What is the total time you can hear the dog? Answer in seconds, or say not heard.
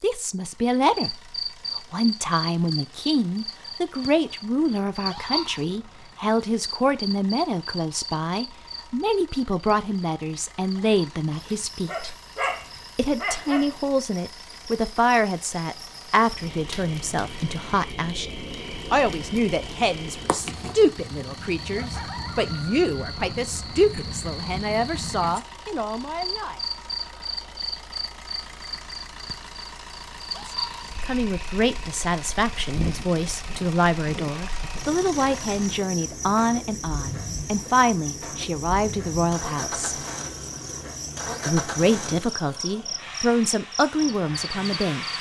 2 s.